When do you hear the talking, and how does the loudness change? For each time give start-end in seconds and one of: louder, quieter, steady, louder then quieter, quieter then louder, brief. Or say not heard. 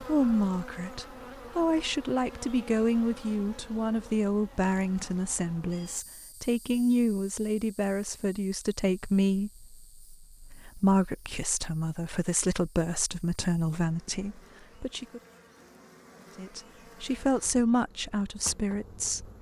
0.0-15.2 steady
16.4-19.2 brief.